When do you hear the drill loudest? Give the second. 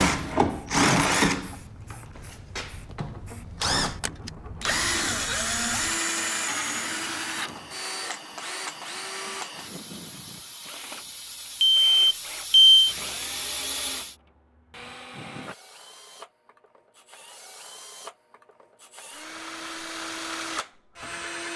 1 s.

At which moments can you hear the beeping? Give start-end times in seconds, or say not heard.
11.6-12.8.